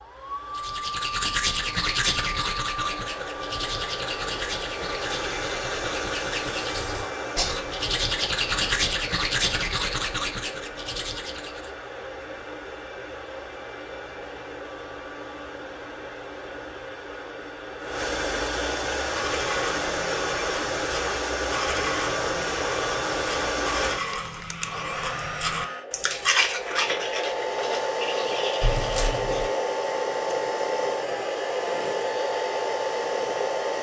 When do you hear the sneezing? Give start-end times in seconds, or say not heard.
28.6-29.5.